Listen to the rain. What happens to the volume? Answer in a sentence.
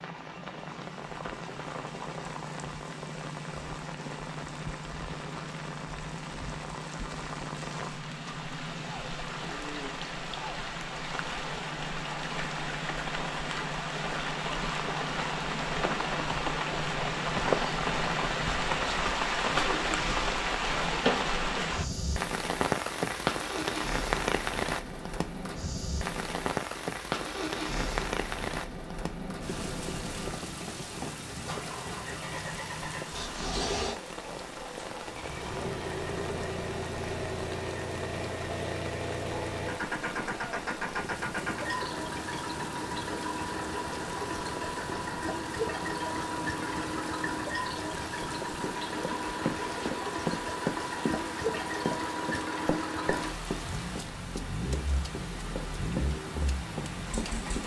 The volume of the rain goes up, then down.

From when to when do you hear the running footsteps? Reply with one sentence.
You can hear the running footsteps from 48.2 to 57.6 s.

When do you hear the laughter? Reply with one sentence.
You can't hear the laughter here.